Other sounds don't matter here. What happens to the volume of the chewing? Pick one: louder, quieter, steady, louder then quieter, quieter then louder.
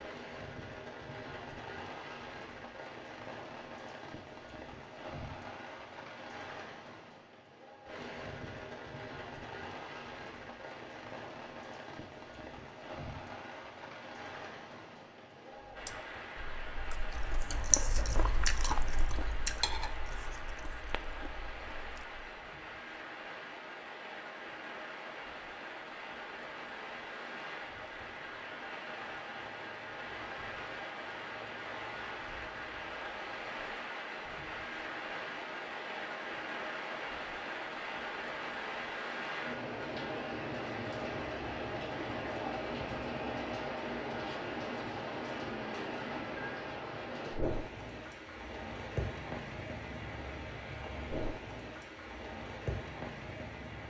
louder then quieter.